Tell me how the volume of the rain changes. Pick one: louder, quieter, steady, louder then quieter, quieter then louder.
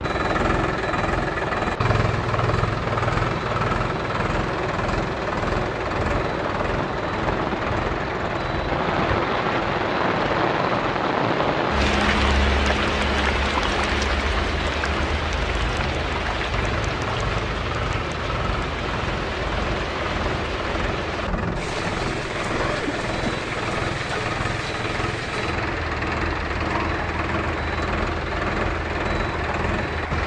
louder then quieter.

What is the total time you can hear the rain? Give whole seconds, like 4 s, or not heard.
30 s.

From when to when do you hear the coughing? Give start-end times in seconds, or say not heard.
22.5-23.4.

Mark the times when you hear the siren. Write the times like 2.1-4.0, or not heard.
not heard.